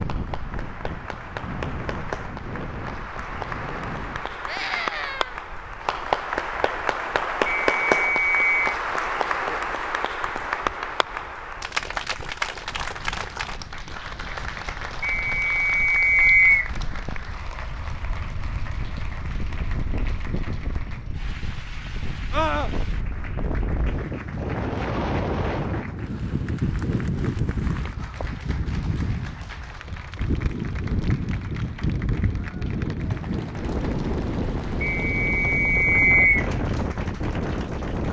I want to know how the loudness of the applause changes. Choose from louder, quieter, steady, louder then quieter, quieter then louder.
quieter.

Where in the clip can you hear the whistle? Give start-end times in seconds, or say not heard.
7.5-8.8, 15.0-16.7, 34.8-36.5.